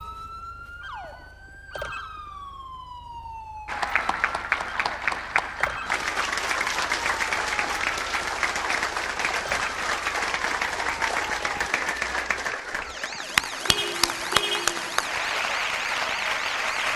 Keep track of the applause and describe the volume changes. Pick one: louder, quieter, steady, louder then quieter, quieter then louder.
steady.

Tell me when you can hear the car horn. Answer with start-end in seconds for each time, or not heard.
13.7-15.0.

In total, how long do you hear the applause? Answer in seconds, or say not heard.
13 s.